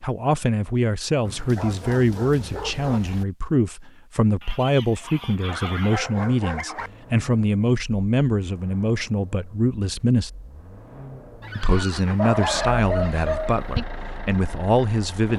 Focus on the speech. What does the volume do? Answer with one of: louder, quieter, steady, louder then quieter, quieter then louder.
steady.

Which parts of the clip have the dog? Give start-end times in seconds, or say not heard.
1.2-3.2, 5.5-6.9, 12.2-13.6.